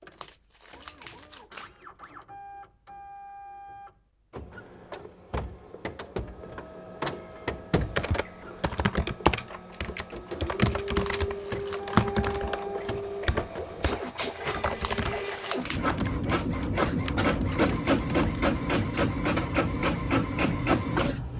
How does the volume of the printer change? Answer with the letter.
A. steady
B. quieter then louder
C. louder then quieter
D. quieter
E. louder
E.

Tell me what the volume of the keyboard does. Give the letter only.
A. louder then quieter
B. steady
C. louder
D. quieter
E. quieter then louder
D.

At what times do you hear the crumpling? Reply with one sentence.
You can hear the crumpling from 0.1 to 2.1 s, from 10.9 to 11.8 s and from 14.8 to 15.8 s.